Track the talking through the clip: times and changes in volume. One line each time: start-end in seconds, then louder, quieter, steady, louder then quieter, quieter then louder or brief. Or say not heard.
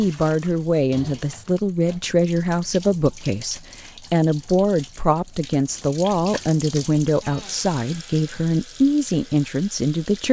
0.0-10.2 steady.